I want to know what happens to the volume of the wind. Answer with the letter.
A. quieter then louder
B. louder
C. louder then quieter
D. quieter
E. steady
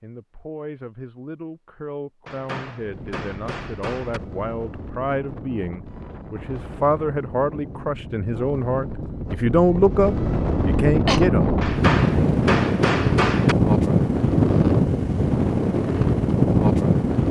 B.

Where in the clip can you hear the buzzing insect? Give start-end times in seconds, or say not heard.
not heard.